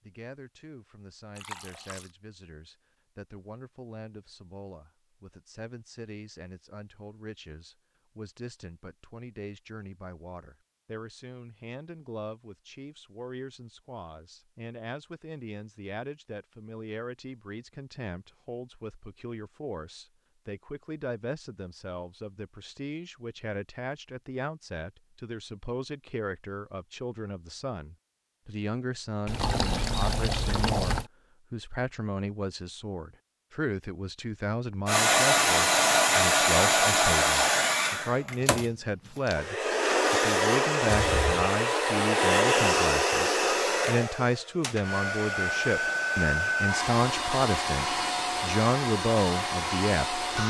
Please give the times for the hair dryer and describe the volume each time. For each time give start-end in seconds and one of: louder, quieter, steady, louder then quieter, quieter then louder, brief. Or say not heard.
34.9-50.4 quieter.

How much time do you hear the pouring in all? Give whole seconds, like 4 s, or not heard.
3 s.